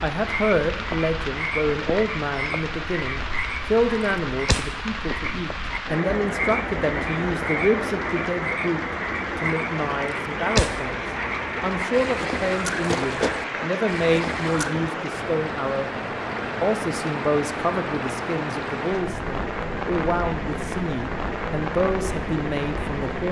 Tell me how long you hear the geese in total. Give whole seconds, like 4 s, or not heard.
not heard.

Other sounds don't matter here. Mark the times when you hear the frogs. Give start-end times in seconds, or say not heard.
0.1-14.8.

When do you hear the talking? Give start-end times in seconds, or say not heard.
0.0-11.0, 11.6-23.2.